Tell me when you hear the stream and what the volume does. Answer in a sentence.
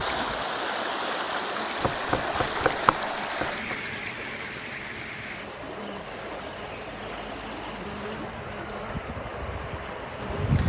The stream can be heard from 0.0 to 10.6 s, getting quieter.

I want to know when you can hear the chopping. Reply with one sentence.
The chopping can be heard from 1.8 to 3.8 s.